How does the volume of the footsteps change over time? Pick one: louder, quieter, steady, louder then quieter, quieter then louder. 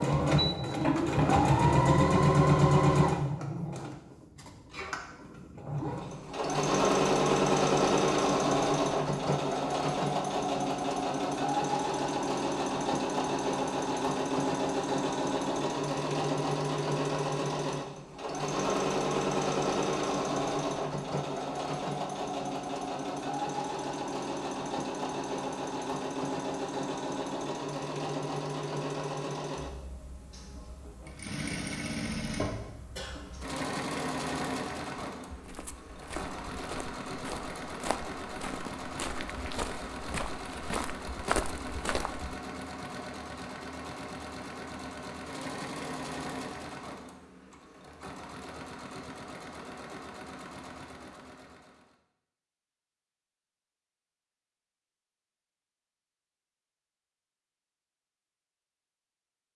louder.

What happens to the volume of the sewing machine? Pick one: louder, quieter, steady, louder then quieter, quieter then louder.
quieter.